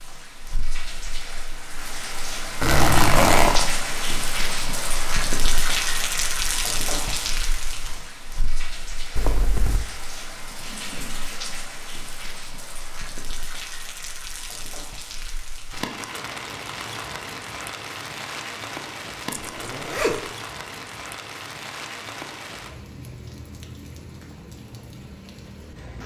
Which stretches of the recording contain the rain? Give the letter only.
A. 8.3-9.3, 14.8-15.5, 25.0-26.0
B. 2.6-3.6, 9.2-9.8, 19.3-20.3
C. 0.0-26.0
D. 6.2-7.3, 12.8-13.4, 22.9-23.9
C.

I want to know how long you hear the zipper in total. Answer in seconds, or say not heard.
3 s.